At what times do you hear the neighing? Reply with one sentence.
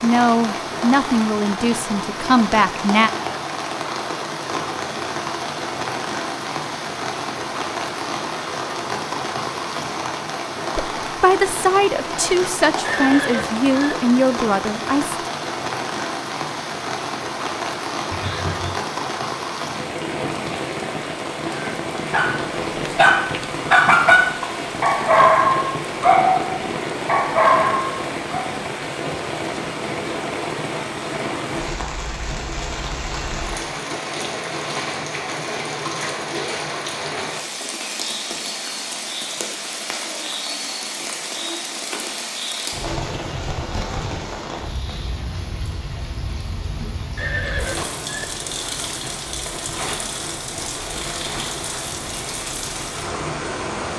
The neighing can be heard from 12.8 to 13.7 s, from 18.1 to 18.8 s and from 47.1 to 48.2 s.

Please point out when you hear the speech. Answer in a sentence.
The speech can be heard from 0.0 to 3.1 s and from 10.8 to 15.2 s.